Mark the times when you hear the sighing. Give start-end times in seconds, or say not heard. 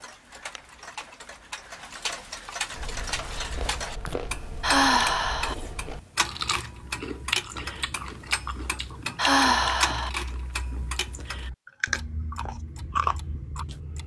4.6-5.5, 9.2-10.1.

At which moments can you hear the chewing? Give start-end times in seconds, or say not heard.
2.7-13.8.